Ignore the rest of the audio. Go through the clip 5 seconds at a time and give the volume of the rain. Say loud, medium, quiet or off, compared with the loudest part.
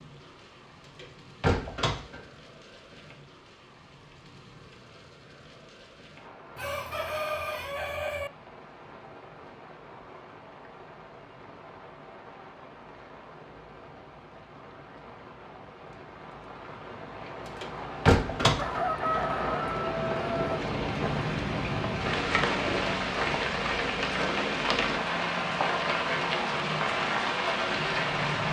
quiet, quiet, quiet, medium, loud, loud.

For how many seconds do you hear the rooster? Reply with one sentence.
The rooster can be heard for 4 seconds in total.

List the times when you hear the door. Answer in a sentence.
The door can be heard from 0.9 to 2.2 s and from 17.6 to 18.8 s.